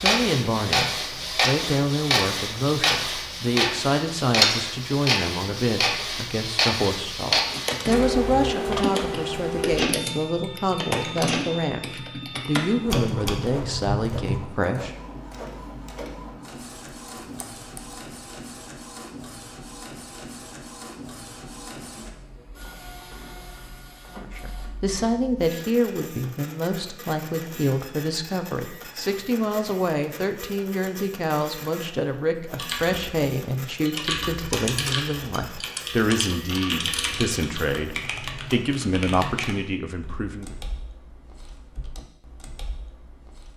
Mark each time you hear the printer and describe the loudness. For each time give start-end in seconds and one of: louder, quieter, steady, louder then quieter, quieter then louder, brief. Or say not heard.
0.0-38.1 quieter.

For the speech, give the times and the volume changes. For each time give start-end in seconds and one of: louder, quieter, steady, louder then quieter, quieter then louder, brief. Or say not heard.
0.0-14.9 steady
24.1-40.5 steady.